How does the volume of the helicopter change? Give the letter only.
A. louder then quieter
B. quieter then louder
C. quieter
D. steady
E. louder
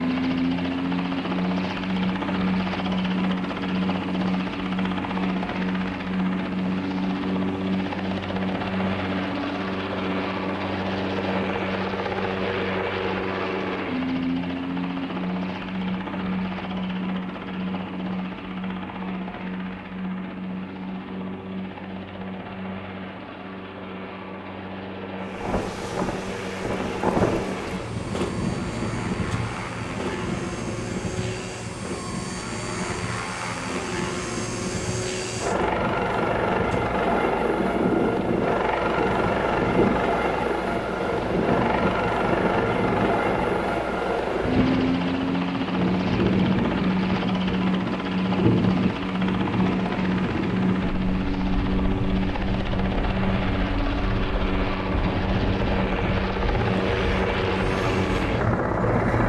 B.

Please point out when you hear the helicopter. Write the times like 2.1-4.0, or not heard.
0.0-59.2.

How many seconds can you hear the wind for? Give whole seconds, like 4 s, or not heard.
34 s.